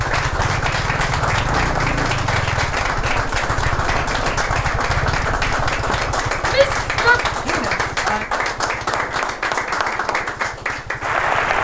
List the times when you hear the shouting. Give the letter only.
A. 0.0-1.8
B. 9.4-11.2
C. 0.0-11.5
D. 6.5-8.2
D.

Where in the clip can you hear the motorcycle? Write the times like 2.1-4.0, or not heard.
0.0-11.5.